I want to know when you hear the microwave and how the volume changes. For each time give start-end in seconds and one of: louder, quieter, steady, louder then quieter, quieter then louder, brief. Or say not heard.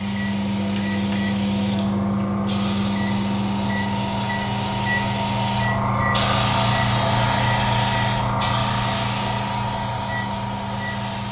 0.0-11.2 quieter.